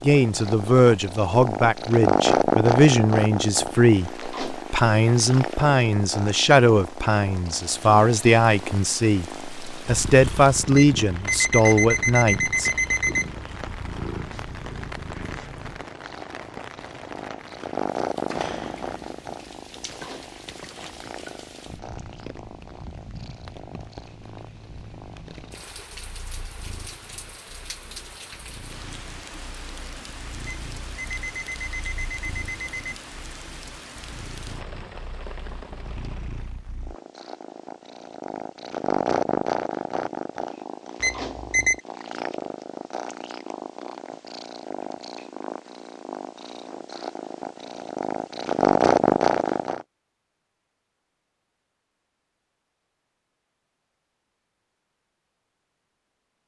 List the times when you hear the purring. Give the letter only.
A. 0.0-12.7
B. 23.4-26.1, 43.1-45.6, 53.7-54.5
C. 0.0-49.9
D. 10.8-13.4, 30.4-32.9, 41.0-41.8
C.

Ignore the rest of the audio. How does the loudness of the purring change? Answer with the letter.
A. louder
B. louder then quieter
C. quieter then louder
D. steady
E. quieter
C.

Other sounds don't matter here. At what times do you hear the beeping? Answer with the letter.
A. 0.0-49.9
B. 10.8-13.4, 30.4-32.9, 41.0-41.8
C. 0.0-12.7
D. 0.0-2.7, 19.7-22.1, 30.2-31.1
B.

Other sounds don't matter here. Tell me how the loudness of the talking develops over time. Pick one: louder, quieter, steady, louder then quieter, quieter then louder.
steady.